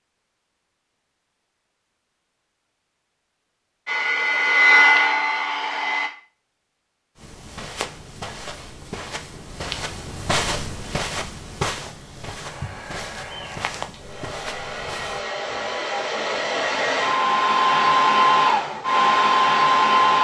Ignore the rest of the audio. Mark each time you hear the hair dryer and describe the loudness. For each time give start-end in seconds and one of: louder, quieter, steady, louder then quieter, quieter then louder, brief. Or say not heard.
3.9-6.1 brief
12.4-20.1 louder.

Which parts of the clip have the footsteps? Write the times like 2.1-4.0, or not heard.
7.2-15.2.